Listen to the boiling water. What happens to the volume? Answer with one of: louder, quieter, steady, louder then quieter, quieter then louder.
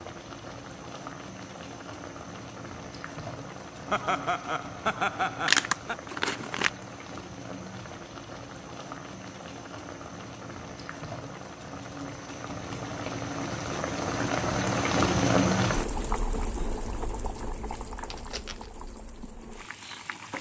louder then quieter.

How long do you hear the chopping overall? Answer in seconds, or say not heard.
not heard.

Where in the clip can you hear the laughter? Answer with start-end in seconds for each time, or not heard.
3.9-6.0.